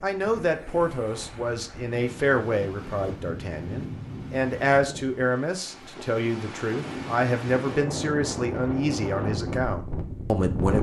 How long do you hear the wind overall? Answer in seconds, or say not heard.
11 s.